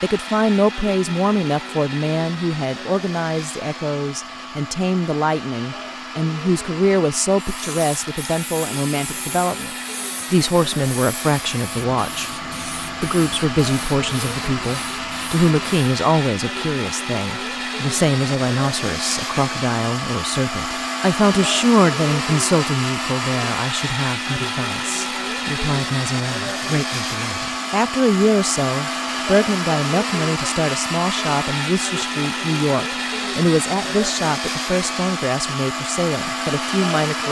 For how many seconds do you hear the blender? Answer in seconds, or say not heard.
37 s.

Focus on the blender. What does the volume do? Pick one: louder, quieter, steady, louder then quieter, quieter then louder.
louder.